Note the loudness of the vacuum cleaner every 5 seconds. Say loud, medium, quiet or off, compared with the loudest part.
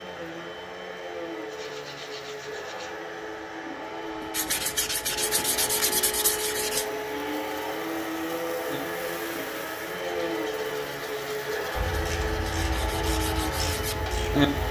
medium, loud, loud.